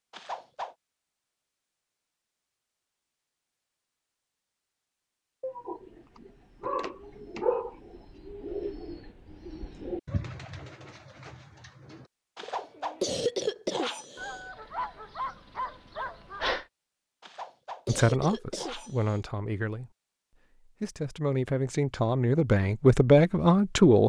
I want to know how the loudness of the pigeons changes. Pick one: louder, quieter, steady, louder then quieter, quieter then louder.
louder then quieter.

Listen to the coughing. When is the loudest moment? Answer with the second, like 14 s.
13 s.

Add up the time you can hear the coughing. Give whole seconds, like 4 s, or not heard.
5 s.